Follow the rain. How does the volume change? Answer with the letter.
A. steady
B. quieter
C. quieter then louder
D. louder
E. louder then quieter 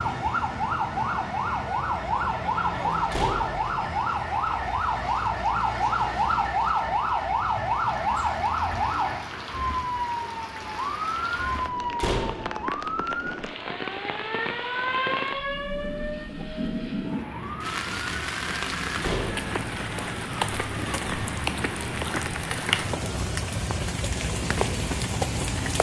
D.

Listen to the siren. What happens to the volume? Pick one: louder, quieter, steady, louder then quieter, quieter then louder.
quieter.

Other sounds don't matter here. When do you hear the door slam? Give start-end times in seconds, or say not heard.
3.1-3.6, 12.0-12.5, 19.0-19.6.